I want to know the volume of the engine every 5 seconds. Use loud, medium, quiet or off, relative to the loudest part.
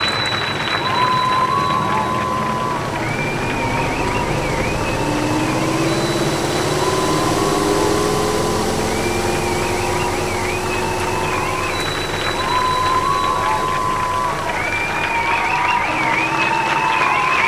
medium, loud, medium, medium.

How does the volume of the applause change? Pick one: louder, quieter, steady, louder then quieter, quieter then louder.
quieter then louder.